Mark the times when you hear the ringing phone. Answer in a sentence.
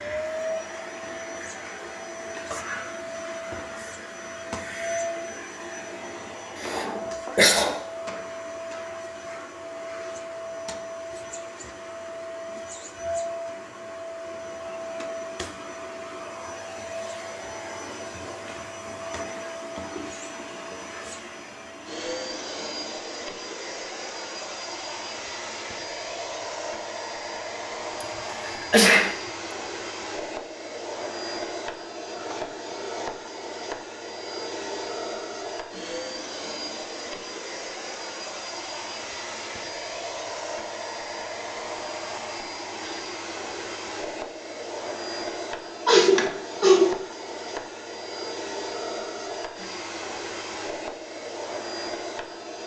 The ringing phone can't be heard in this clip.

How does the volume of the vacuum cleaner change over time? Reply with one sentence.
The loudness of the vacuum cleaner stays about the same.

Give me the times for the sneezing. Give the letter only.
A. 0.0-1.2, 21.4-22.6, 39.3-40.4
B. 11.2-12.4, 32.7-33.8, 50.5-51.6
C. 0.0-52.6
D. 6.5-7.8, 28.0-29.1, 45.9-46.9
D.